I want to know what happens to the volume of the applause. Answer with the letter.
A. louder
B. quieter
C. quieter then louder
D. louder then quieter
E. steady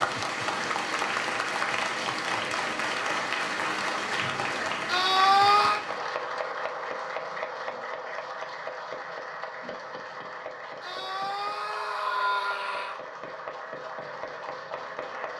B.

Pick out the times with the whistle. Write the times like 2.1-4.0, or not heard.
not heard.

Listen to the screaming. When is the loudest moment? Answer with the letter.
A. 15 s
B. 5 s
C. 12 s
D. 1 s
B.